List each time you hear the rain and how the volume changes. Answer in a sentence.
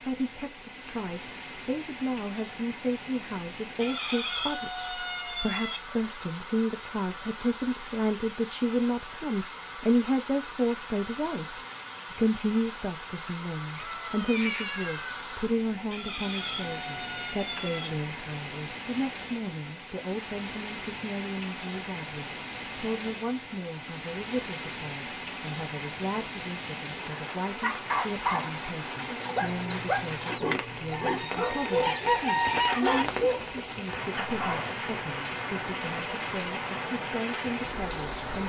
The rain can be heard from 0.0 to 38.4 s, getting louder.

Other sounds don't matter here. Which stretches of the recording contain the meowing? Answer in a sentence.
The meowing can be heard from 13.8 to 15.1 s.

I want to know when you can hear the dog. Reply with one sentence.
The dog can be heard from 27.6 to 34.8 s.